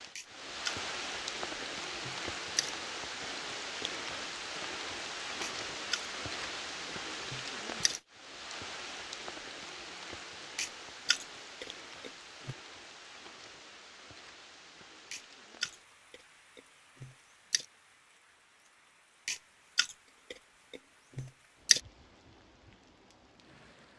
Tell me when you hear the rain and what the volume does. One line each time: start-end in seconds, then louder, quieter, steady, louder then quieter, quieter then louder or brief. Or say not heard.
0.0-23.9 quieter.